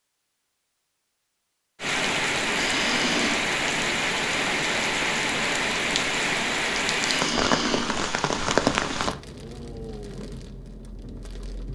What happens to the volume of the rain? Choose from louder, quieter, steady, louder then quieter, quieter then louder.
quieter.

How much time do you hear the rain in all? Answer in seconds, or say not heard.
10 s.